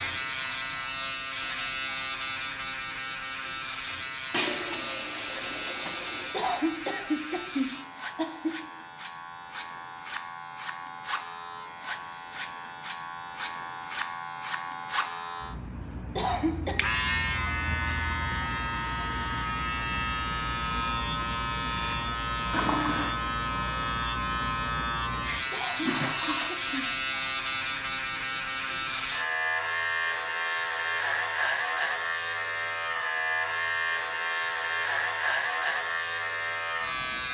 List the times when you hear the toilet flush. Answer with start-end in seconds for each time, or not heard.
4.3-6.3, 22.5-23.2, 25.8-26.6.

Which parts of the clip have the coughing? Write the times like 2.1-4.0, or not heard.
6.3-8.6, 16.1-16.8, 25.5-26.9.